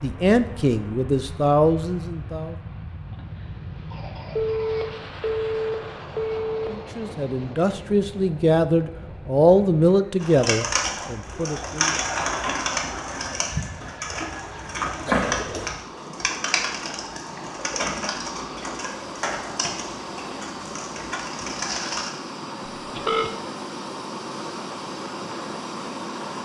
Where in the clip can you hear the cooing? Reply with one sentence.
You can hear the cooing from 10.2 to 22.1 s.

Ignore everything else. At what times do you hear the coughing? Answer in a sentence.
The coughing can be heard from 3.1 to 5.0 s, from 15.1 to 15.8 s and from 22.9 to 23.4 s.